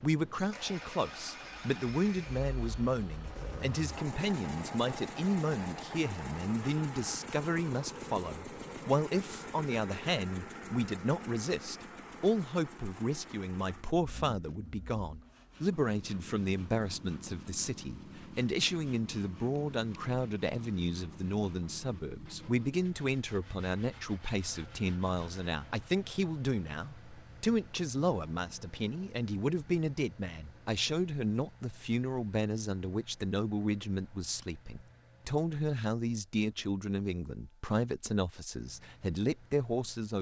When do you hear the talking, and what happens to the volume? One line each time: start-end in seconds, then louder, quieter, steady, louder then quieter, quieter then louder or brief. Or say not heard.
0.0-40.1 steady.